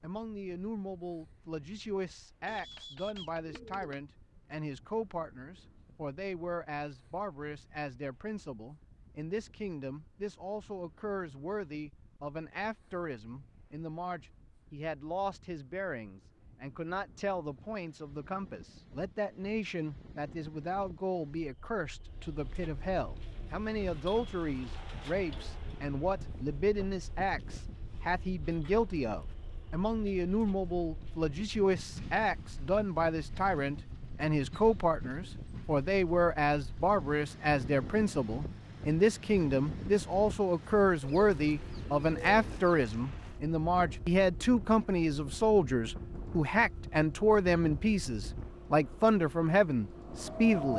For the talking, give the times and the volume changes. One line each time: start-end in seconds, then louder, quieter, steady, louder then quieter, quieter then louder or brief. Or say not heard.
0.0-50.7 louder.